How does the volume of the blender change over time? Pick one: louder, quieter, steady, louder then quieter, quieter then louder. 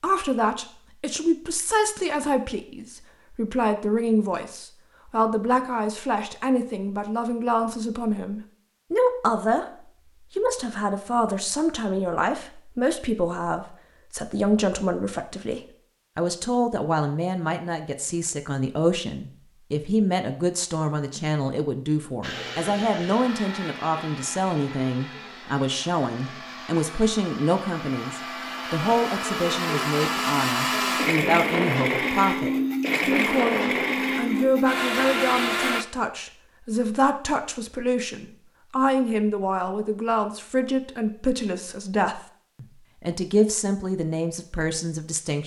louder.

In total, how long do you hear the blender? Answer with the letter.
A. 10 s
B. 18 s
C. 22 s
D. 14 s
D.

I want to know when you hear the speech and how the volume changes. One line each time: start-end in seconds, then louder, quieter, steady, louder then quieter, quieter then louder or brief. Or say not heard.
0.0-45.4 steady.